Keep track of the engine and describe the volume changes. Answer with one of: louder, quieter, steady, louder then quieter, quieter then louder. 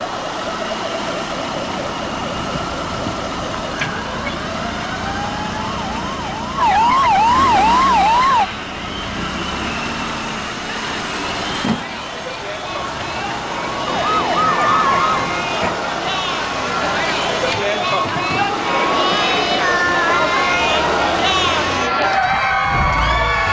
steady.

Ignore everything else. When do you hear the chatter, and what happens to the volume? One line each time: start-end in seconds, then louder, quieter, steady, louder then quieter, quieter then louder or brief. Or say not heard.
8.2-23.4 louder.